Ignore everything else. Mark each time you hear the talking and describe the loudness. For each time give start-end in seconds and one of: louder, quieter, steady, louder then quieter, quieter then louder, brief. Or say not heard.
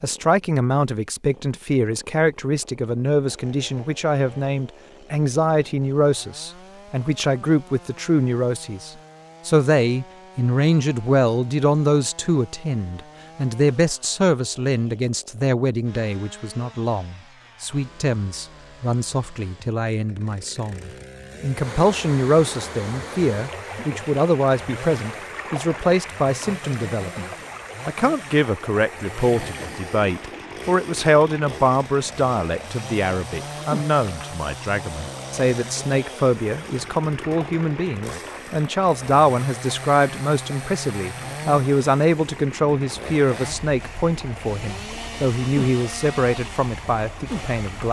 0.0-47.8 steady.